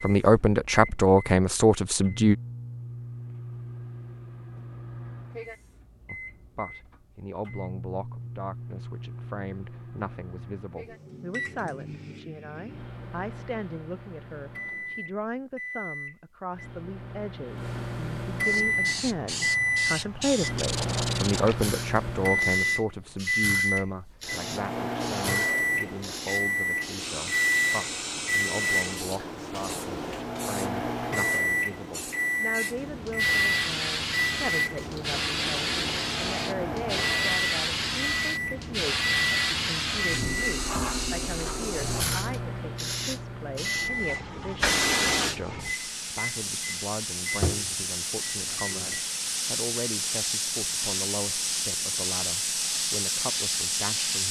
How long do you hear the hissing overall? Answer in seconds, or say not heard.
36 s.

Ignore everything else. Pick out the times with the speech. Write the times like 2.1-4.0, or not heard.
0.0-2.4, 6.0-54.2.